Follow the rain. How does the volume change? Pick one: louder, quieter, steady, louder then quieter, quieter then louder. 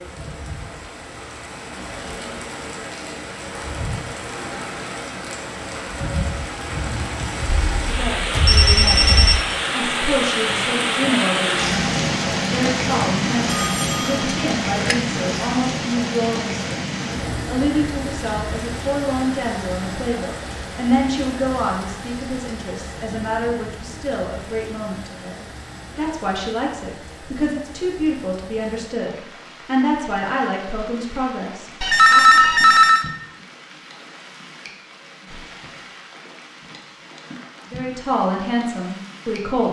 louder then quieter.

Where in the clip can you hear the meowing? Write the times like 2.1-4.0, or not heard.
not heard.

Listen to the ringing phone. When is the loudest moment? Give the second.
32 s.